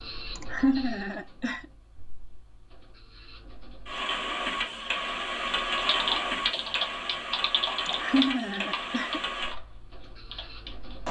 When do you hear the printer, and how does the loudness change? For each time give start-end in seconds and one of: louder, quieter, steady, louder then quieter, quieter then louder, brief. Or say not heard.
0.0-11.0 louder then quieter.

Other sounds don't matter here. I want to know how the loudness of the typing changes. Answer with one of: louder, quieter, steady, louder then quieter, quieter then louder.
quieter.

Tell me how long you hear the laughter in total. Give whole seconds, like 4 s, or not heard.
3 s.